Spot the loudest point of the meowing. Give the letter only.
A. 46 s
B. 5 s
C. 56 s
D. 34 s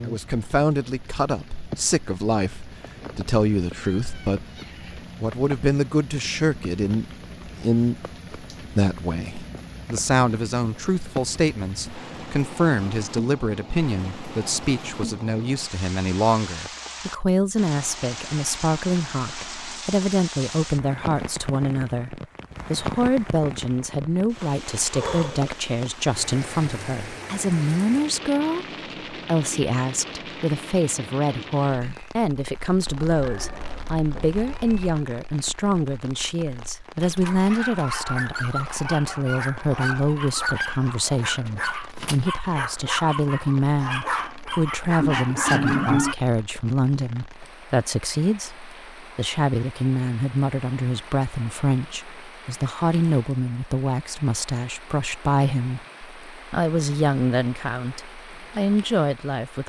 A.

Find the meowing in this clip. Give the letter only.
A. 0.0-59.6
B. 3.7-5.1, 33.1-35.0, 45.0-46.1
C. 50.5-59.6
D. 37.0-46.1
B.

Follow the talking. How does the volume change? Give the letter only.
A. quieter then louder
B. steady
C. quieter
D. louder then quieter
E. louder
B.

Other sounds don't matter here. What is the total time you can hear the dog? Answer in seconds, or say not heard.
9 s.